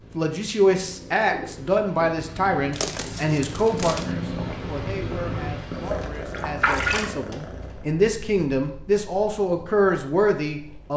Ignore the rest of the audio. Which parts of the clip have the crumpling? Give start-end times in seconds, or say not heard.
2.7-4.2.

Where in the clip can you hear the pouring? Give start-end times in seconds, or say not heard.
5.8-7.1.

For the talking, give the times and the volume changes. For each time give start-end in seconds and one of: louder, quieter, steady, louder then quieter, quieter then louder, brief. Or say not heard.
0.1-10.9 quieter then louder.